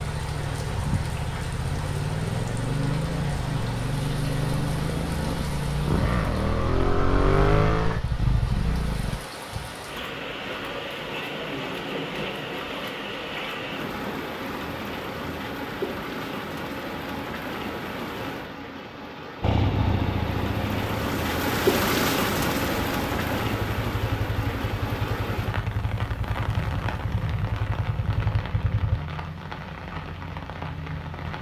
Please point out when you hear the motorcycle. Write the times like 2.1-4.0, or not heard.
0.0-9.2, 19.4-29.0.